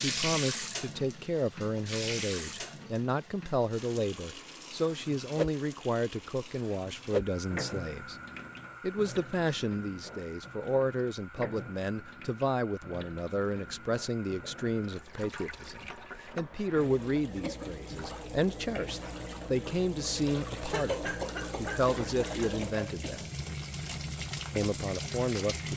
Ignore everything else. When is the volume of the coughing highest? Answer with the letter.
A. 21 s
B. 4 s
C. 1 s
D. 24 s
A.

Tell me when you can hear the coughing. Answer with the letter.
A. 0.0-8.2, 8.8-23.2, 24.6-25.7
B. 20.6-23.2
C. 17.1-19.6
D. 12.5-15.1
B.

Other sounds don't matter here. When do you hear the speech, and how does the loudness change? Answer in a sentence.
You can hear the speech from 0.0 to 8.2 s, at a steady volume; from 8.8 to 23.2 s, at a steady volume; and briefly from 24.6 to 25.7 s.